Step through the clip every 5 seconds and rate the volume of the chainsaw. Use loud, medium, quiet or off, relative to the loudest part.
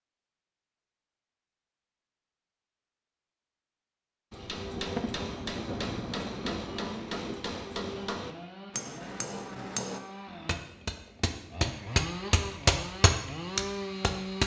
off, medium, loud.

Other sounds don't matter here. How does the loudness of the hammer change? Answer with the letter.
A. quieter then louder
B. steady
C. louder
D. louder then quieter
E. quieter
C.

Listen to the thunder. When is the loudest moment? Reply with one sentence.
The loudest moment of the thunder is at 5 seconds.